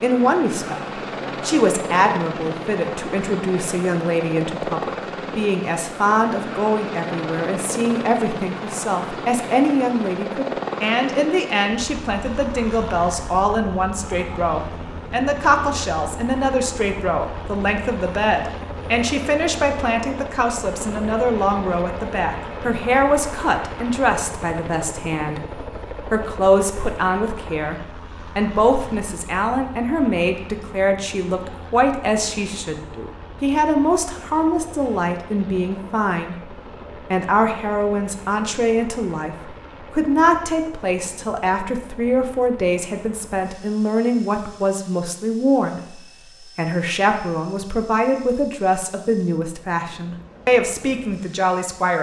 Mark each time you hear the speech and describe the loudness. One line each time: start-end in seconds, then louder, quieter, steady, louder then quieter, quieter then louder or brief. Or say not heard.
0.0-51.9 steady.